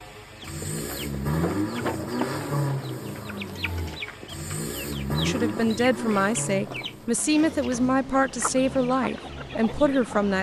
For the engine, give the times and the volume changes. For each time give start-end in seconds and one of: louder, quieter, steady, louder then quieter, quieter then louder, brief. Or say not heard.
0.0-10.3 quieter.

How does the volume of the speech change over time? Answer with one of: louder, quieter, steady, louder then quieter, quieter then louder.
steady.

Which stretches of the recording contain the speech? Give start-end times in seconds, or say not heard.
5.2-10.3.